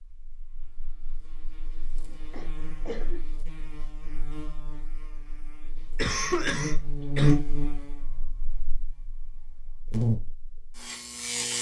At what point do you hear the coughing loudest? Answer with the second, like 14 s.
6 s.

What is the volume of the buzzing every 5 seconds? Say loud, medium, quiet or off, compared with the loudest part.
quiet, loud, loud.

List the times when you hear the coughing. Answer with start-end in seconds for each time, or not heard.
2.0-3.2, 6.0-7.3.